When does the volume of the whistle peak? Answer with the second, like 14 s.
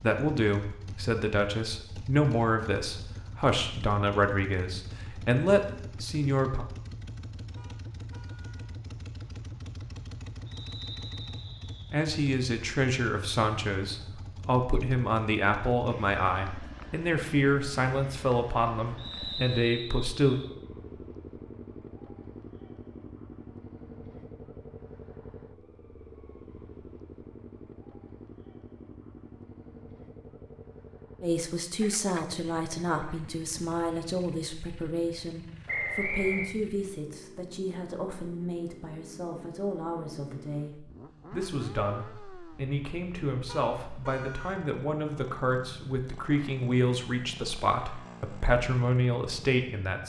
36 s.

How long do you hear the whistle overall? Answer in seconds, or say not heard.
4 s.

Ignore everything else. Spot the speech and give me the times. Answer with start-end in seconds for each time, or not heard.
0.0-6.7, 11.9-20.4, 31.2-50.0.